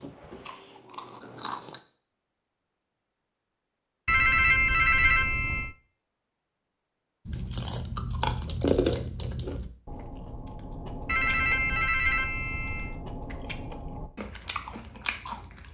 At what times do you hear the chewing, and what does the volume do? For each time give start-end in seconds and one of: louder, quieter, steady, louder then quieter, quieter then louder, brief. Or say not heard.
0.0-1.8 brief
7.2-15.6 quieter.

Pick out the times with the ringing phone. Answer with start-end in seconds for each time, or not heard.
4.0-5.8, 11.1-13.0.